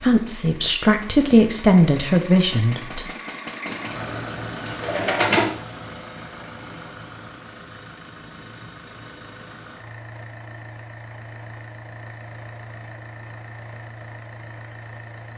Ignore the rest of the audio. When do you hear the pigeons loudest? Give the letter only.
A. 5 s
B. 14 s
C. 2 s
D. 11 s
A.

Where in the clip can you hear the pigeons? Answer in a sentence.
The pigeons can be heard from 3.6 to 5.5 s.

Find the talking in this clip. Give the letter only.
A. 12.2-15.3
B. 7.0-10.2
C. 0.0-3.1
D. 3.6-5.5
C.